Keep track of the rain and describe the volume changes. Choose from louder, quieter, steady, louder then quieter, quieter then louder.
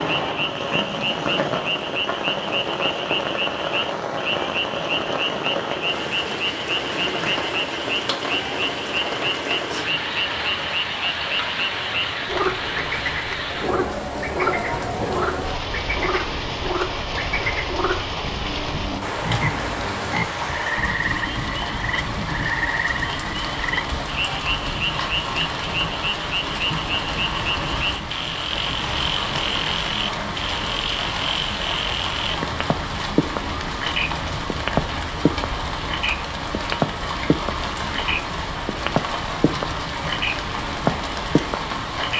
steady.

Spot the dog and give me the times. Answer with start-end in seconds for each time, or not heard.
not heard.